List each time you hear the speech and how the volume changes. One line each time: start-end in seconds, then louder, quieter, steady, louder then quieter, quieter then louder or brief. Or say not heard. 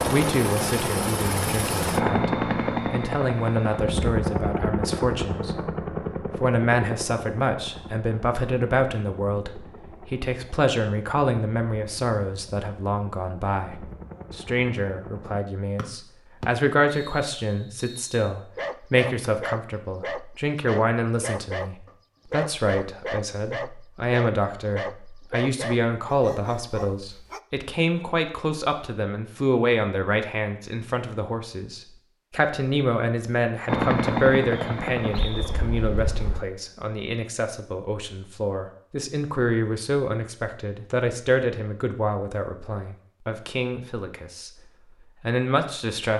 0.0-46.1 steady.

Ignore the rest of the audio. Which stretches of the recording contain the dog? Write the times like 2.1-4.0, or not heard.
18.6-27.4.